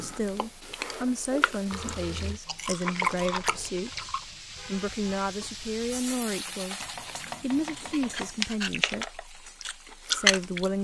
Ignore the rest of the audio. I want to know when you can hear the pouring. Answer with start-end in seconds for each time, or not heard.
1.7-2.4.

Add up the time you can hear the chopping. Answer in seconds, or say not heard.
2 s.